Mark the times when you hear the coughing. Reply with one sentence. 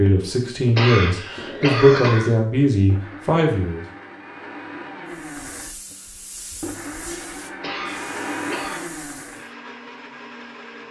You can hear the coughing from 0.8 to 2.3 s and from 7.6 to 8.8 s.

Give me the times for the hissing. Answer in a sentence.
The hissing can be heard from 5.0 to 9.5 s.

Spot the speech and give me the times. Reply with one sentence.
You can hear the speech from 0.0 to 3.9 s.